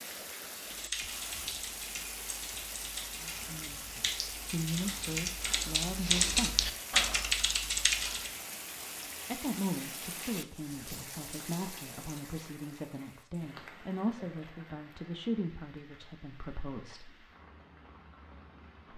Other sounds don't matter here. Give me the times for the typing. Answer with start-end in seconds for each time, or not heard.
0.6-8.3.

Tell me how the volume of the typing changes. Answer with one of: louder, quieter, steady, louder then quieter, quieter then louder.
louder.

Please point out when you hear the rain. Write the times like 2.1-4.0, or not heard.
0.0-18.9.